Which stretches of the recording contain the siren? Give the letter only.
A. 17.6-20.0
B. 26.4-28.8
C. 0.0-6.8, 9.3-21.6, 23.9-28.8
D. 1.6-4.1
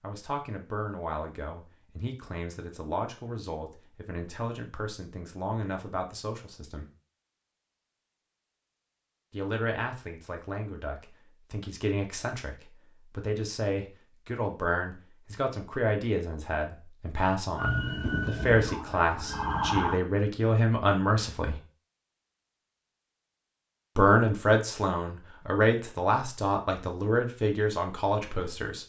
A.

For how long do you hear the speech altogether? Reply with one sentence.
You can hear the speech for 24 seconds altogether.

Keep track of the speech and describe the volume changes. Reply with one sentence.
The loudness of the speech goes up.